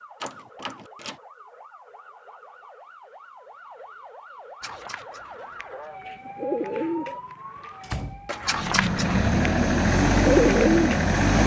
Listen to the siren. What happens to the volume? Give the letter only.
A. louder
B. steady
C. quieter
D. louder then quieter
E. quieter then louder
A.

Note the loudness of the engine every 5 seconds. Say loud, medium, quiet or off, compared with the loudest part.
off, loud, loud.